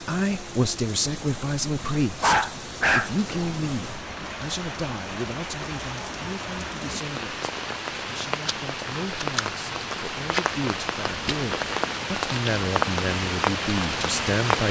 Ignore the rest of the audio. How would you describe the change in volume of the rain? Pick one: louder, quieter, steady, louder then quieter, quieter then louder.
louder.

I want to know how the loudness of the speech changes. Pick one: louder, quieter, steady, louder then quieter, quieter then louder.
quieter then louder.